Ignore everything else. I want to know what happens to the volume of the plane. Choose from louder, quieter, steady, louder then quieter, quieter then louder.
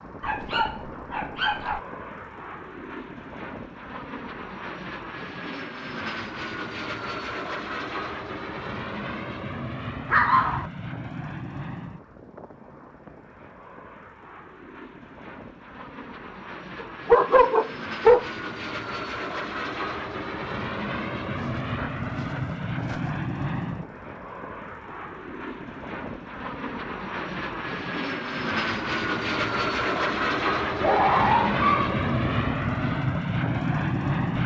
louder.